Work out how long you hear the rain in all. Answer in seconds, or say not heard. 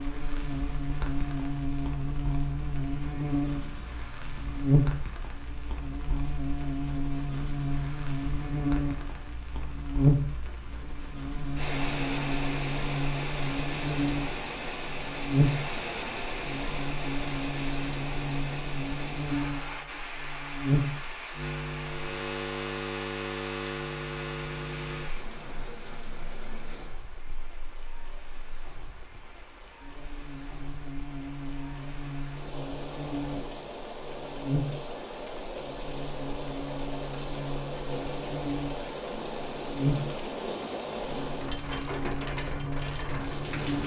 44 s.